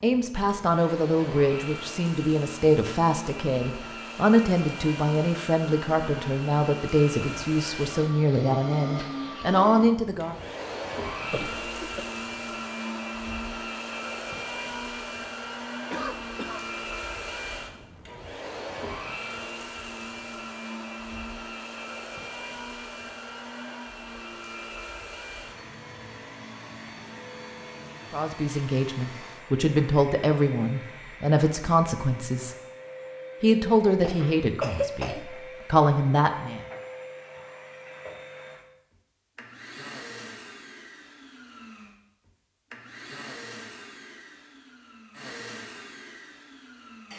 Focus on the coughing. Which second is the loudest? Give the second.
35 s.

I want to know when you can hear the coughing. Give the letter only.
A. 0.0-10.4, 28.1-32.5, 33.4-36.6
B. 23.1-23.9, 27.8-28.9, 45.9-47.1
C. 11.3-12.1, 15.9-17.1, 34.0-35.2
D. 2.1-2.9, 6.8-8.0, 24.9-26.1
C.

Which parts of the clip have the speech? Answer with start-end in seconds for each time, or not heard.
0.0-10.4, 28.1-32.5, 33.4-36.6.